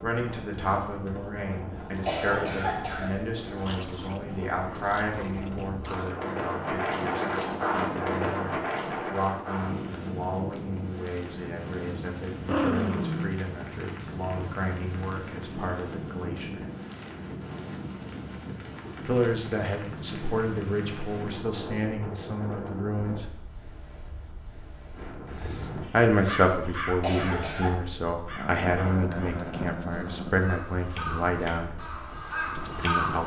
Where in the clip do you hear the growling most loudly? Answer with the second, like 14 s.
13 s.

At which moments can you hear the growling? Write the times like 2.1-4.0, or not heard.
3.6-6.2, 12.3-13.3, 28.4-30.4.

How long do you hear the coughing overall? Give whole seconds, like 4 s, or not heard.
2 s.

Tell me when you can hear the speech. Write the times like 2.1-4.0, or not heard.
0.0-16.6, 19.1-23.4, 25.9-31.8, 32.5-33.2.